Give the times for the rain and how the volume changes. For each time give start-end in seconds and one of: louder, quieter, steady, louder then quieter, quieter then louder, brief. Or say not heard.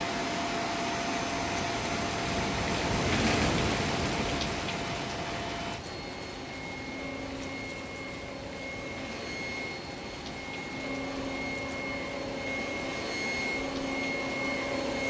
0.0-15.0 quieter.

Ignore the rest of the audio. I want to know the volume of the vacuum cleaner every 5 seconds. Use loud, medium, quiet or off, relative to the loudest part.
loud, medium, loud.